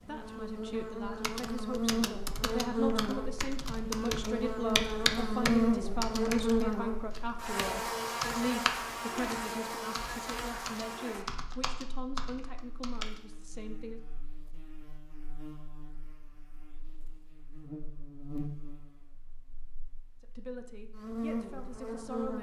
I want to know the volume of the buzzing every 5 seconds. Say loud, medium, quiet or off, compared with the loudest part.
loud, loud, quiet, quiet, medium.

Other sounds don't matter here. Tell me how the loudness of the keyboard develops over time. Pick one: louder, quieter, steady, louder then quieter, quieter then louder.
louder then quieter.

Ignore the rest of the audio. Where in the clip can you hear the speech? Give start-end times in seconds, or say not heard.
0.0-14.0, 20.2-22.3.